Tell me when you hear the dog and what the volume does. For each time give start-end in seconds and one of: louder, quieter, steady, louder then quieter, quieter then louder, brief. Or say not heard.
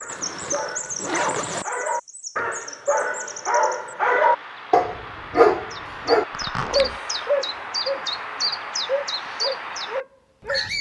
0.0-10.7 louder then quieter.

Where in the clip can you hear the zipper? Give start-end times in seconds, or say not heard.
0.1-1.6, 6.3-7.0.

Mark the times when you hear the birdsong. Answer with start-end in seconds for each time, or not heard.
0.0-10.7.